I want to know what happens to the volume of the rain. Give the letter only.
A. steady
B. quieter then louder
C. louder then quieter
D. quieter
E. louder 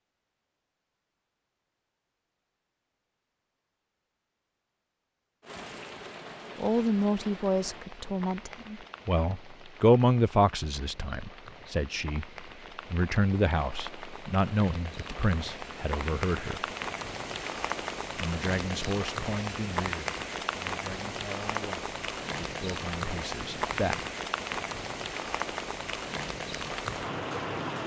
E.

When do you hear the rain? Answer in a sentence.
The rain can be heard from 5.4 to 27.8 s.